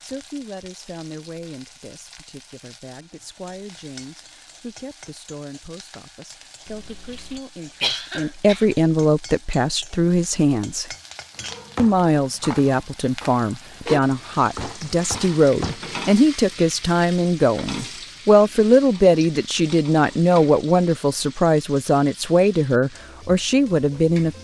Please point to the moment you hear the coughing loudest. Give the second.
8 s.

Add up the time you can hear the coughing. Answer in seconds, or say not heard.
2 s.